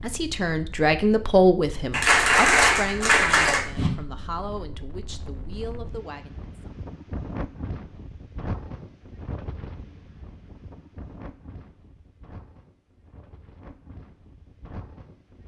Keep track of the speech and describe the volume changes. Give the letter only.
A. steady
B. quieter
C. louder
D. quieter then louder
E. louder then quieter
B.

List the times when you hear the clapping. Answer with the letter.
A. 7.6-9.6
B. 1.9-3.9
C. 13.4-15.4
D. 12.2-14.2
B.